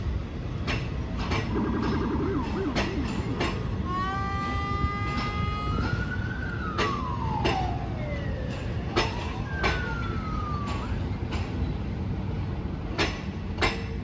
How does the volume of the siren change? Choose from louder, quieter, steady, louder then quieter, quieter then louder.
quieter.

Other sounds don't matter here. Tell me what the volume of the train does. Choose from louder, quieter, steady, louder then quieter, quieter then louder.
steady.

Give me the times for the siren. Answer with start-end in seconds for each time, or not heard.
1.4-11.1.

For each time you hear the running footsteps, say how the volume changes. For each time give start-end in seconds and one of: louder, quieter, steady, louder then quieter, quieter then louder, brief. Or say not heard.
not heard.